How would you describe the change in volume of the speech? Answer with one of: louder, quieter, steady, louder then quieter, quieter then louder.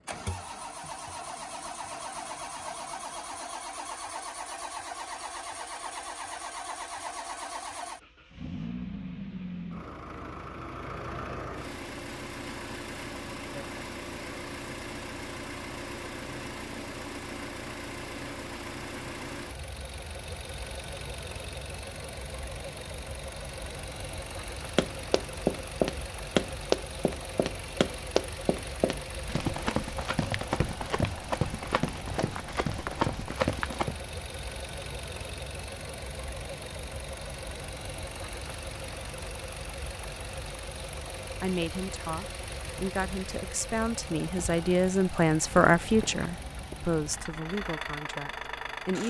louder then quieter.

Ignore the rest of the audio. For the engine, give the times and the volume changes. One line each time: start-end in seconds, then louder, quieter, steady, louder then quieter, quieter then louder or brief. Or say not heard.
0.0-49.0 steady.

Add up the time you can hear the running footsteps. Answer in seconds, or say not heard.
9 s.